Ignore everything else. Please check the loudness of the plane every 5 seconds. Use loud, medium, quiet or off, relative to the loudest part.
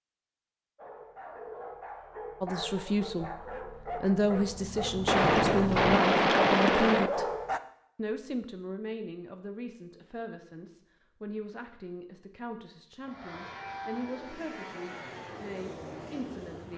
off, off, loud, loud.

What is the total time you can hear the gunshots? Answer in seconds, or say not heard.
2 s.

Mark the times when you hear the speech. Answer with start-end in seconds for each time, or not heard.
2.4-3.3, 4.0-7.3, 8.0-16.7.